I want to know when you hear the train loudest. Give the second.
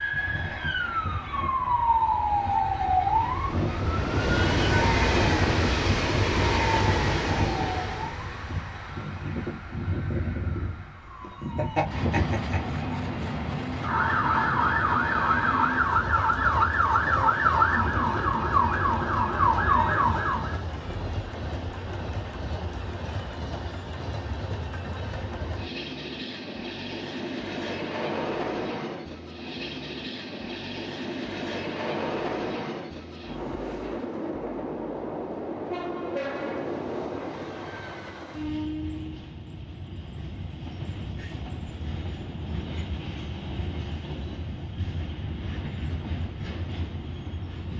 5 s.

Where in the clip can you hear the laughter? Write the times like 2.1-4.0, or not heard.
11.2-12.6.